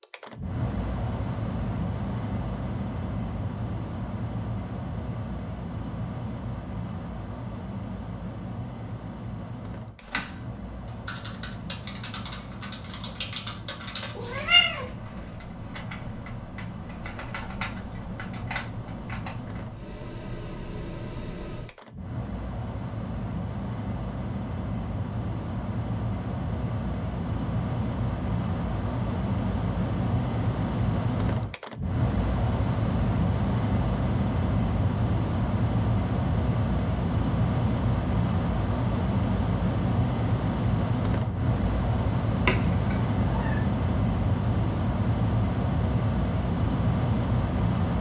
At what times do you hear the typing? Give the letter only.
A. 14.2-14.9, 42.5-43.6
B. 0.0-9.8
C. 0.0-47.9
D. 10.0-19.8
D.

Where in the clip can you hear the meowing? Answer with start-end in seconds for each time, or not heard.
14.2-14.9, 42.5-43.6.